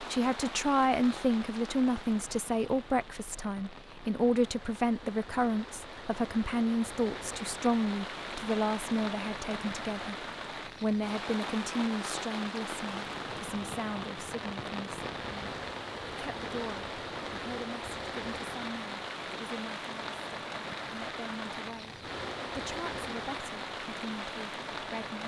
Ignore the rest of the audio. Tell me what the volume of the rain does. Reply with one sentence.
The volume of the rain goes up.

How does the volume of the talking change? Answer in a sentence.
The volume of the talking goes down.